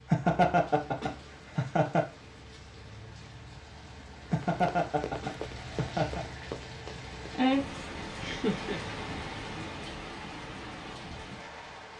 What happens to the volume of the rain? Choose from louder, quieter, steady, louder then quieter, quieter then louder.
louder then quieter.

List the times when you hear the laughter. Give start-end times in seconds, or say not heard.
0.1-2.0, 4.3-6.2, 8.2-8.8.